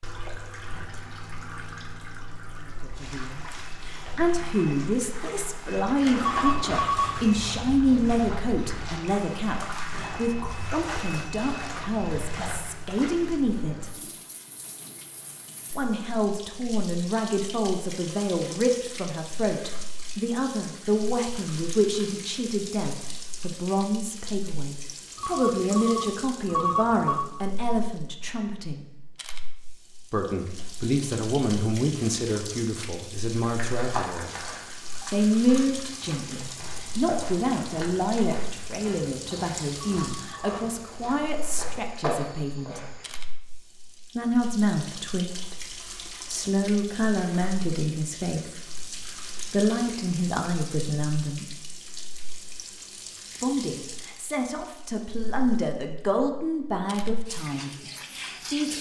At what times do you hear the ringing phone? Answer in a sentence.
You can hear the ringing phone from 6.2 to 7.3 s, from 25.1 to 27.2 s and from 39.8 to 40.5 s.